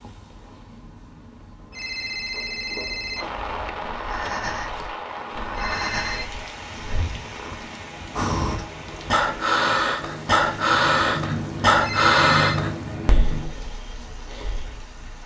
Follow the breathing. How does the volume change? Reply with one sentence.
The loudness of the breathing goes up, then down.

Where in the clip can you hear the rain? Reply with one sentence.
The rain can be heard from 3.1 to 15.2 s.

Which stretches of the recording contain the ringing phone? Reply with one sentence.
You can hear the ringing phone from 1.7 to 3.2 s, from 5.5 to 6.2 s and from 11.8 to 12.7 s.